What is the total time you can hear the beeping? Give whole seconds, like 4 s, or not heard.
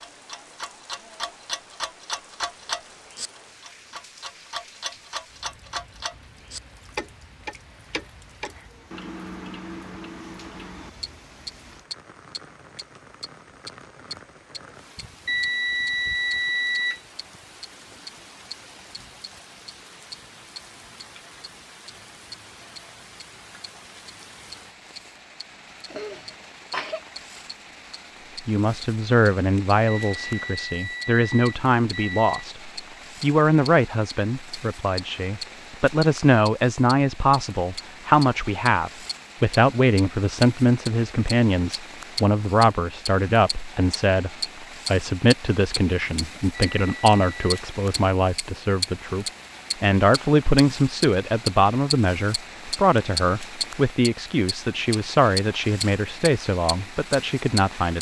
5 s.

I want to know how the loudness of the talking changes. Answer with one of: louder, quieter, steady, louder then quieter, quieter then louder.
steady.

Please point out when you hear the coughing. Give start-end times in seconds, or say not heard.
25.9-27.0.